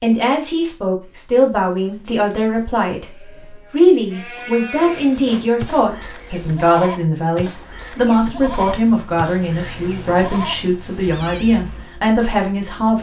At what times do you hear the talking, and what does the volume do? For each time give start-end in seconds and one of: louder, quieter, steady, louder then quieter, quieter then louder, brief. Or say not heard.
0.0-12.9 steady.